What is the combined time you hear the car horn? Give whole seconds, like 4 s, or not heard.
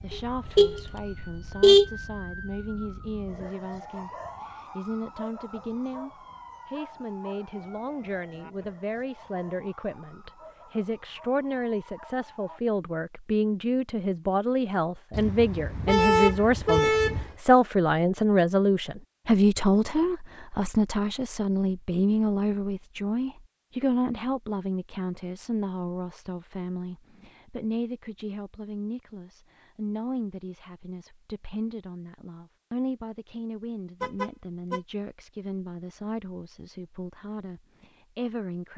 5 s.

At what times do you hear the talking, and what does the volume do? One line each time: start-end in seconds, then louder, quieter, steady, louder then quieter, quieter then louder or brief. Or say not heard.
0.0-38.7 louder then quieter.